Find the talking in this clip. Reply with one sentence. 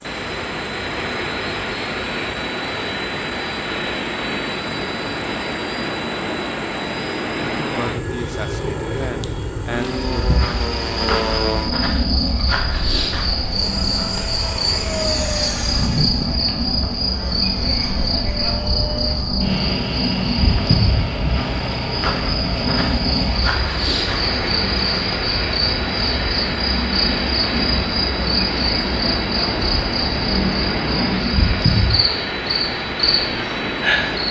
The talking can be heard from 7.5 to 10.2 s.